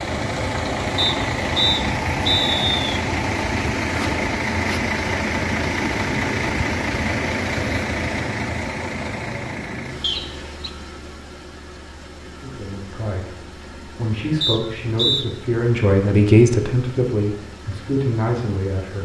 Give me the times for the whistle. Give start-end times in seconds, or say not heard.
0.9-2.8, 10.0-10.7, 14.4-15.2.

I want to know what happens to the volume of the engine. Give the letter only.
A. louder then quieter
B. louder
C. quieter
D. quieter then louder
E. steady
C.